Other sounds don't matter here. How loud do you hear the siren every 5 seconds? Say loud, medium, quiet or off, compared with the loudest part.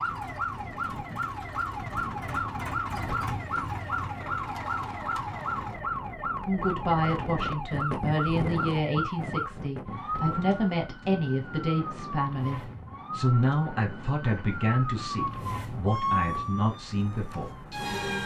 loud, loud, medium, loud.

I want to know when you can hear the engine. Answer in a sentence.
You can hear the engine from 0.0 to 5.8 s.